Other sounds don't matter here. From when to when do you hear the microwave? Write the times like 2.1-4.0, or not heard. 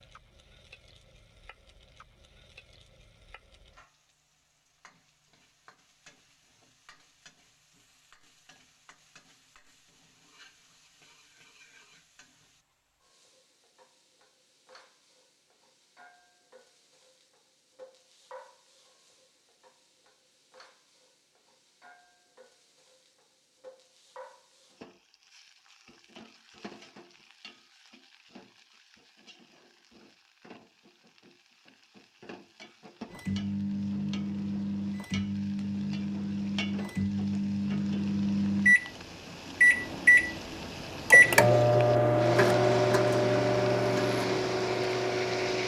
33.1-45.6.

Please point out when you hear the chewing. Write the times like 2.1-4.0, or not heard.
not heard.